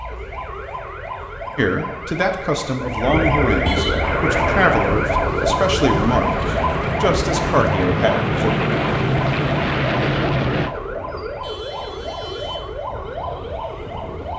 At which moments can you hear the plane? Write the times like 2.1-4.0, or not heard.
4.0-10.8.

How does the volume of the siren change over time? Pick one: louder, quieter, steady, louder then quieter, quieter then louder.
louder then quieter.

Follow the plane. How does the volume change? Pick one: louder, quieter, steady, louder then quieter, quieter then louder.
louder.